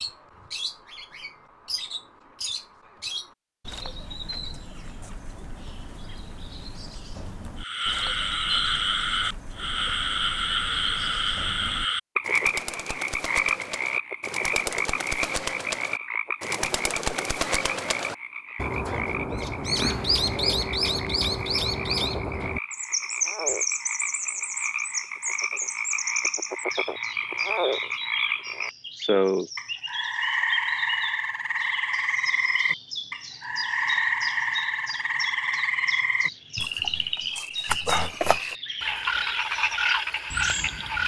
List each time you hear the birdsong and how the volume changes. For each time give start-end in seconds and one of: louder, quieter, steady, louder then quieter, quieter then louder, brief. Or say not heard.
0.0-41.0 louder then quieter.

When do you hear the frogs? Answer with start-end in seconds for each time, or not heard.
7.5-41.0.